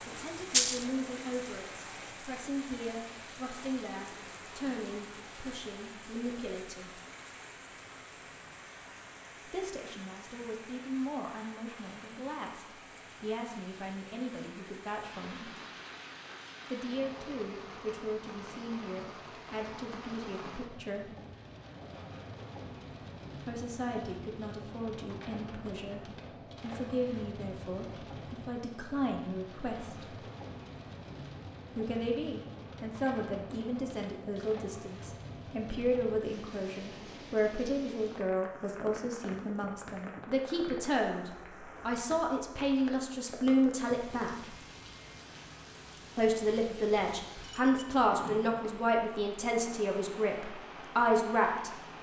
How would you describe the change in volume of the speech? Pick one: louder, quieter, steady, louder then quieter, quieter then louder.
louder.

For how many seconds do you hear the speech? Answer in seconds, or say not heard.
43 s.